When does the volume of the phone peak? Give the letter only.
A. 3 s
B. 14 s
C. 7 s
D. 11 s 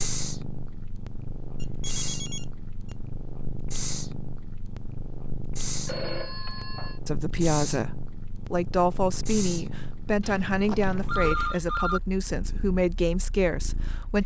D.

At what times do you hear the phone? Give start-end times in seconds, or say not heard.
1.6-3.0, 5.8-7.0, 10.2-12.0.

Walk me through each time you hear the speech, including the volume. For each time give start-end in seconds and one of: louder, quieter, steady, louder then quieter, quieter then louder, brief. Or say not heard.
7.0-14.2 steady.